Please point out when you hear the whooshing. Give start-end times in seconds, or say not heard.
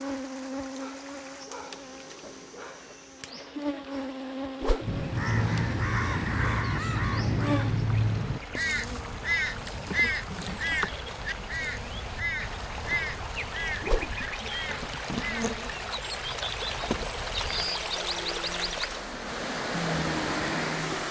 4.6-5.0, 13.8-14.2.